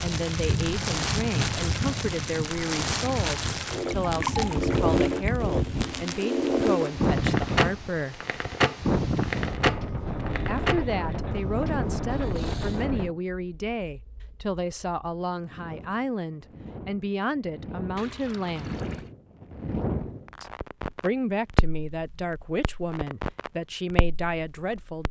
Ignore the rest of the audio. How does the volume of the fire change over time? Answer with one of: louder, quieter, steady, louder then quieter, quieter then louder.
quieter then louder.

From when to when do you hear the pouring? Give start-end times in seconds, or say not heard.
3.6-5.3, 12.0-12.9, 17.9-19.1.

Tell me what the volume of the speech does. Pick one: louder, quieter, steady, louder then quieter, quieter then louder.
steady.